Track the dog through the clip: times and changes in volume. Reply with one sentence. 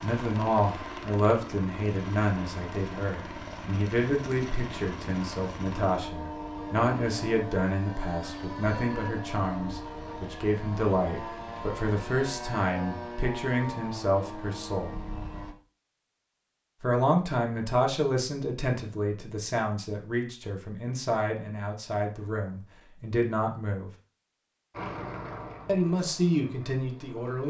You can't hear the dog here.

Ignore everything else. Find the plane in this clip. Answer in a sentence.
You can hear the plane from 0.0 to 15.6 s and from 24.7 to 27.4 s.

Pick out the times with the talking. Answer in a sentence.
The talking can be heard from 0.0 to 15.0 s, from 16.8 to 23.9 s and from 25.6 to 27.4 s.